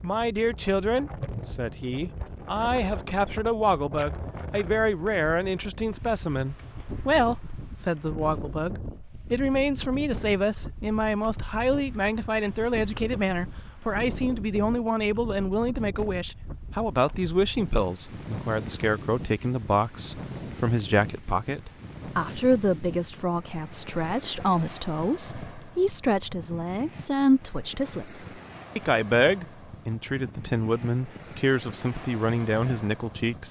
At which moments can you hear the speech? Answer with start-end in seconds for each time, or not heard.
0.0-33.4.